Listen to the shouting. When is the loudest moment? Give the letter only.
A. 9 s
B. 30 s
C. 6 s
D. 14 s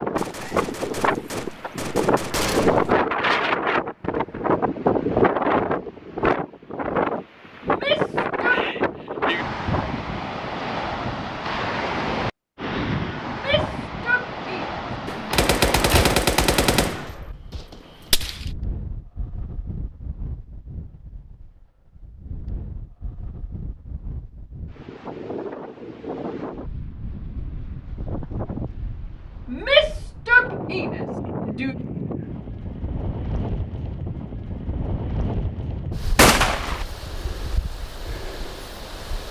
B.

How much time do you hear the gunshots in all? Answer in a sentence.
You can hear the gunshots for 7 seconds altogether.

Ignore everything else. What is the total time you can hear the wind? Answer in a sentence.
You can hear the wind for 39 seconds altogether.